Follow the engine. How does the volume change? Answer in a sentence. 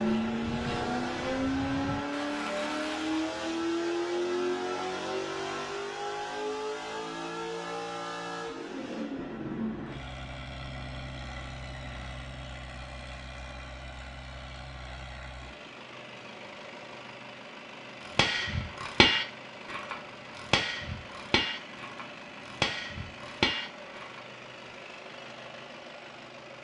The loudness of the engine goes down.